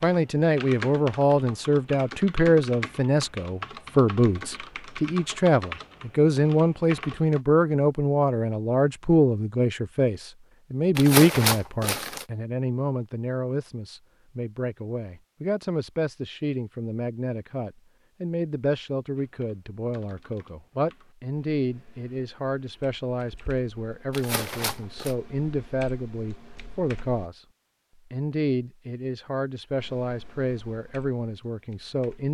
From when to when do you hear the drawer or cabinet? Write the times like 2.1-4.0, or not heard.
not heard.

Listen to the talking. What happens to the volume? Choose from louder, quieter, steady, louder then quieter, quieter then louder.
quieter.